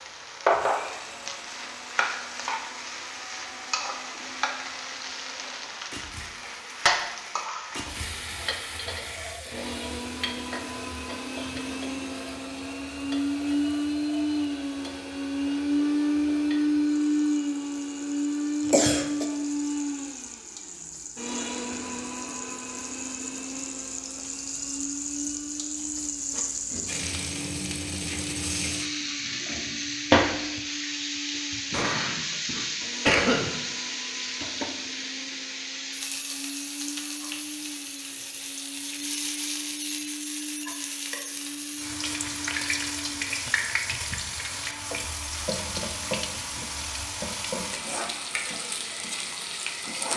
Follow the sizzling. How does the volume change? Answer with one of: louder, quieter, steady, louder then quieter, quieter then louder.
quieter then louder.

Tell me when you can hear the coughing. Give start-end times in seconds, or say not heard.
18.6-19.2, 31.5-33.5.